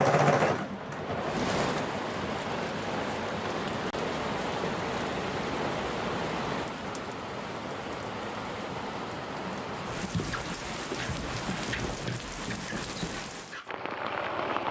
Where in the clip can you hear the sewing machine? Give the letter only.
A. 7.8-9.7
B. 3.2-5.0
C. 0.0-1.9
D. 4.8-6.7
C.